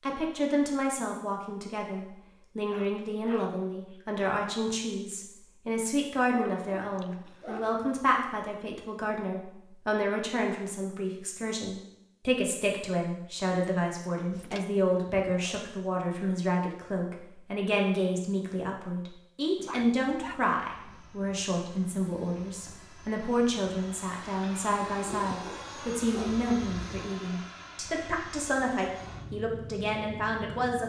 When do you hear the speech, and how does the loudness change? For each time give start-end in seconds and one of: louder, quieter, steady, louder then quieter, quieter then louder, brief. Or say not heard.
0.0-30.8 steady.